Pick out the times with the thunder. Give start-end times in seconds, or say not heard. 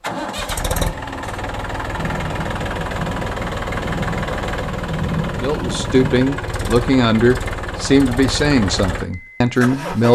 1.9-6.3.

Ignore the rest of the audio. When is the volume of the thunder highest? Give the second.
5 s.